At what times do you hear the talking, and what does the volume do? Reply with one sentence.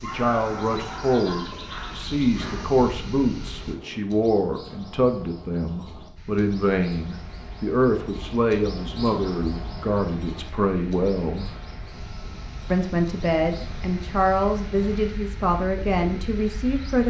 You can hear the talking from 0.0 to 11.5 s, at a steady volume; and from 12.7 to 17.0 s, at a steady volume.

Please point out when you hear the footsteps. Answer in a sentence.
You can't hear the footsteps here.